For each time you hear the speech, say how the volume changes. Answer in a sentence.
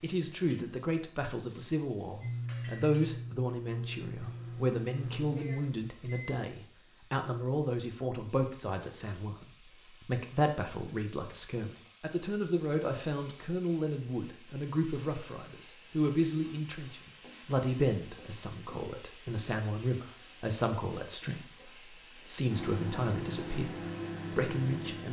The speech can be heard from 0.0 to 25.0 s, at a steady volume.